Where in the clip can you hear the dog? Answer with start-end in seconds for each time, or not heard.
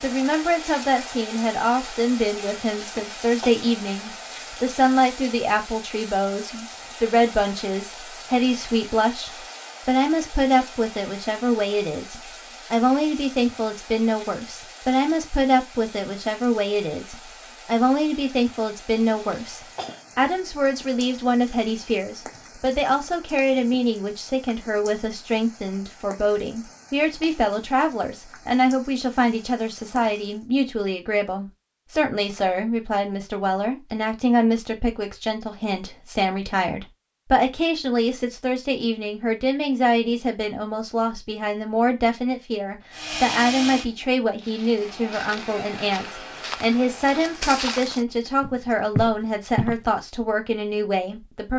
not heard.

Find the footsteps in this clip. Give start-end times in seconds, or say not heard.
44.4-49.8.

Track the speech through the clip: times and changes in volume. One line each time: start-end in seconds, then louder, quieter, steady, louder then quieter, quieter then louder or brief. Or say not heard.
0.0-51.5 steady.